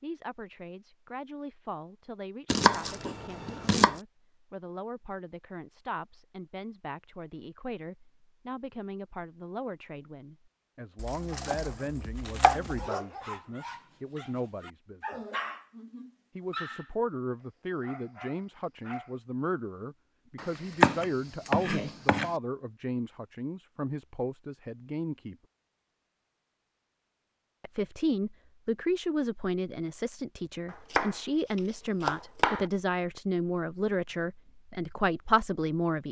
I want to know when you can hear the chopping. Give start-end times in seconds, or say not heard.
2.5-4.0, 10.9-12.9, 20.4-22.3, 30.7-32.6.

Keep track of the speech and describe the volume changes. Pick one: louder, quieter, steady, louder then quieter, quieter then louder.
louder.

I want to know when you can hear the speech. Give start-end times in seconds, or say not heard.
0.0-15.2, 16.4-25.4, 27.6-36.0.